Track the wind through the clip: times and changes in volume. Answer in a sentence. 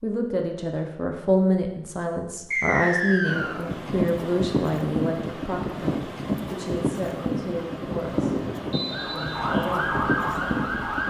The wind can be heard from 3.2 to 11.0 s, at a steady volume.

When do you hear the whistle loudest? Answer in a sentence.
The volume of the whistle peaks at 3 seconds.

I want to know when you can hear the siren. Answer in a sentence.
The siren can be heard from 8.8 to 11.0 s.